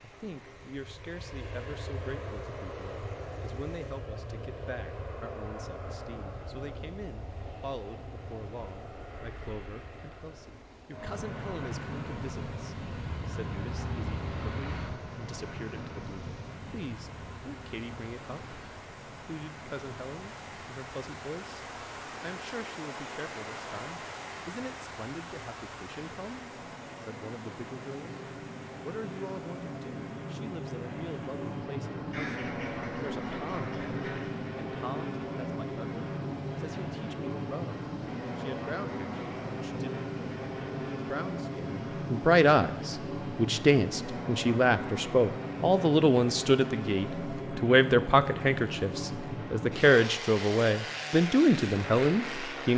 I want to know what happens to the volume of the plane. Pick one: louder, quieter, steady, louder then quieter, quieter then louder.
louder.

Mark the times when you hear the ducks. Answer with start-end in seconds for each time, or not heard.
12.9-14.9, 32.1-34.3.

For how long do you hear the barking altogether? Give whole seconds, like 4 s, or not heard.
not heard.